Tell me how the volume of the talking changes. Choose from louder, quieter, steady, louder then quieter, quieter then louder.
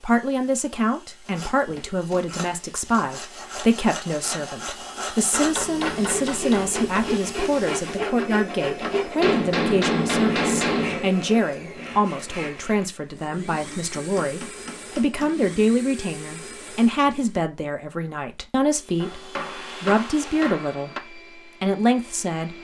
steady.